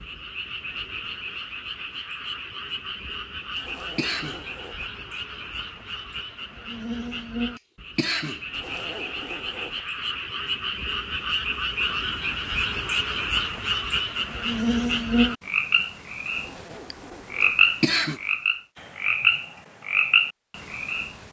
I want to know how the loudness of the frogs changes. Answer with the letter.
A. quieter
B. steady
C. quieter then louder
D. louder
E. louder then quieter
D.